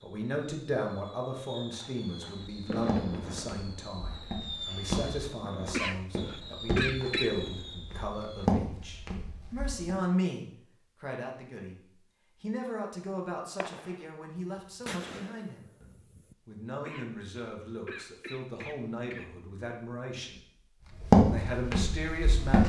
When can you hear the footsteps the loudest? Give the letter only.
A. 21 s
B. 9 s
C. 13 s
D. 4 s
A.